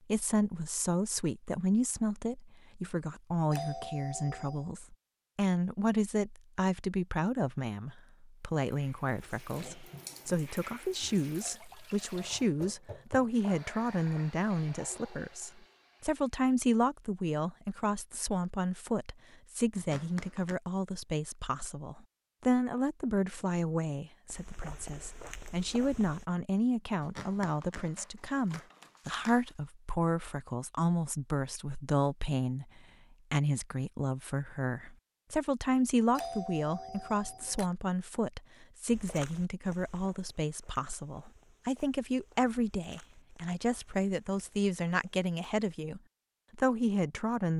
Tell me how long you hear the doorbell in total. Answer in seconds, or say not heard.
3 s.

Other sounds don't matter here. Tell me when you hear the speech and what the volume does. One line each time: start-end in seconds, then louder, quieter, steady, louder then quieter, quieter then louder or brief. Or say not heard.
0.1-47.5 steady.